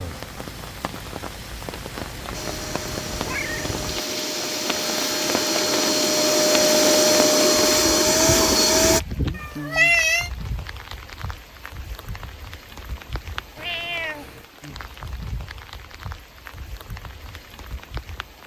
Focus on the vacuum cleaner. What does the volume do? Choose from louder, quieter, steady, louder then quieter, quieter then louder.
louder.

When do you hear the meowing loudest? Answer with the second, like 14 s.
10 s.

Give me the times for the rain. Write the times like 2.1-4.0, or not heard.
0.0-18.4.